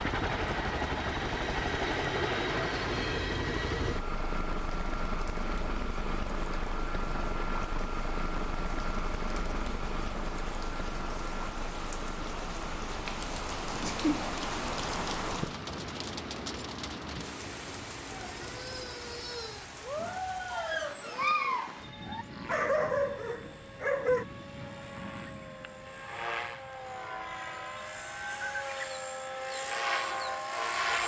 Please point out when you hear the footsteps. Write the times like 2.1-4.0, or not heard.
not heard.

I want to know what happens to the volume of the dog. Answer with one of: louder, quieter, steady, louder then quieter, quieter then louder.
louder.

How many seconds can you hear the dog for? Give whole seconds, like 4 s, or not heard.
6 s.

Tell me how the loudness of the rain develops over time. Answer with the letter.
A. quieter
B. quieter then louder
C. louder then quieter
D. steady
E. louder
C.